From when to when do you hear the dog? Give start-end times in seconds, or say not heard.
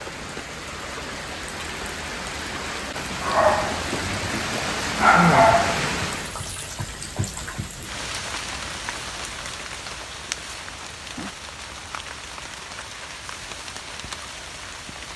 3.2-6.7.